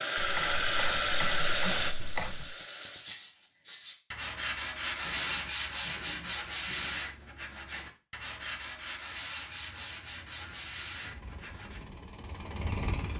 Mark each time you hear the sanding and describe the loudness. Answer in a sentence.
The sanding can be heard from 0.6 to 11.8 s, getting louder then quieter.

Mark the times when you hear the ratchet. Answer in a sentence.
The ratchet can be heard from 0.1 to 2.5 s, from 5.0 to 7.0 s and from 9.1 to 11.2 s.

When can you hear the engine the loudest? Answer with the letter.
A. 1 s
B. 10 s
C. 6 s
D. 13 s
A.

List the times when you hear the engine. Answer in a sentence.
You can hear the engine from 0.0 to 3.1 s and from 10.9 to 13.1 s.